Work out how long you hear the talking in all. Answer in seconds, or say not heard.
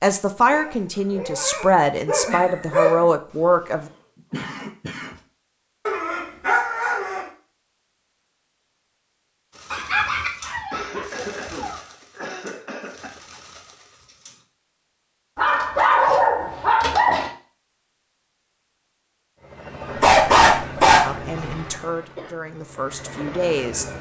7 s.